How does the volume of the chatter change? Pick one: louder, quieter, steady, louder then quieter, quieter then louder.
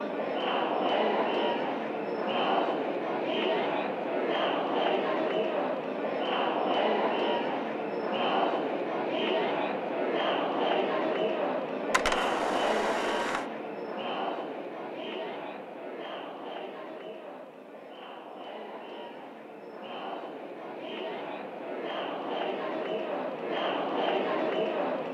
quieter then louder.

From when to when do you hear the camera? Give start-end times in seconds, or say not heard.
11.9-13.4.